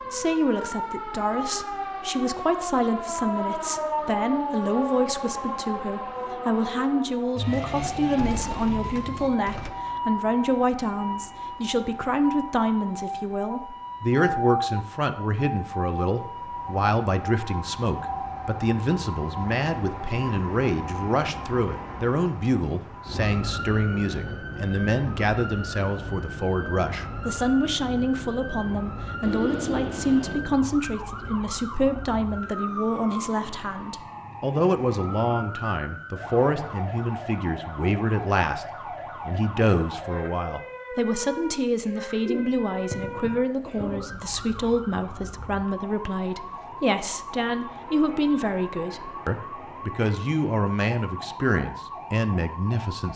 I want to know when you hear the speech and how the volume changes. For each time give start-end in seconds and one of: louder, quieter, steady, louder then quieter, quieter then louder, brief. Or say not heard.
0.1-53.1 steady.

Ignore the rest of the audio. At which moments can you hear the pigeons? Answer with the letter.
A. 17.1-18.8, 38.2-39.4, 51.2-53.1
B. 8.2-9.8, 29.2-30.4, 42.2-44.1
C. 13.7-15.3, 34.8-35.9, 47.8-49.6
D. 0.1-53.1
B.